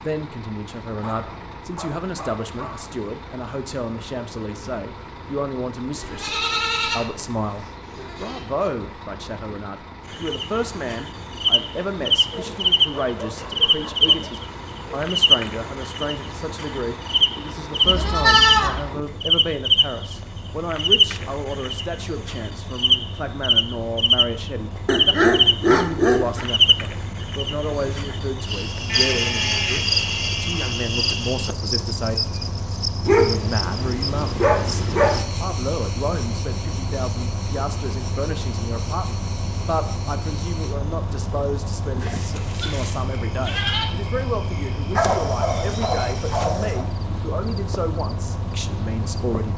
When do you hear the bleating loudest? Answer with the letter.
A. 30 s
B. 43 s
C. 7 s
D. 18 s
D.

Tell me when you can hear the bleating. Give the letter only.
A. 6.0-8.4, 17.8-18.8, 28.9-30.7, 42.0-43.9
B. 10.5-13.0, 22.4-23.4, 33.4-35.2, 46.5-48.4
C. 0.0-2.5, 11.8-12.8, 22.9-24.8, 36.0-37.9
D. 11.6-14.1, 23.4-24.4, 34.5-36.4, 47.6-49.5
A.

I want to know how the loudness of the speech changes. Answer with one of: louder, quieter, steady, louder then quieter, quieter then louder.
steady.